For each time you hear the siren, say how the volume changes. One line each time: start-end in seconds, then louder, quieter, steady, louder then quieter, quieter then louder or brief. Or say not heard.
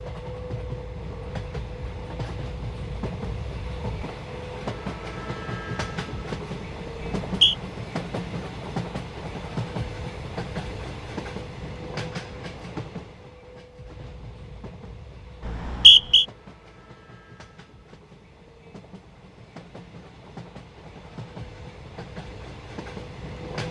not heard.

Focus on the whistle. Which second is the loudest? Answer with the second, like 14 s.
16 s.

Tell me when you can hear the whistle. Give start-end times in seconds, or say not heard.
7.0-7.5, 15.4-16.2.